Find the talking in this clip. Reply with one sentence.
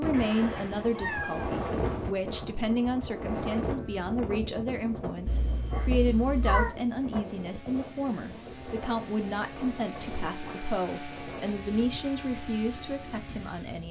The talking can be heard from 0.0 to 13.8 s.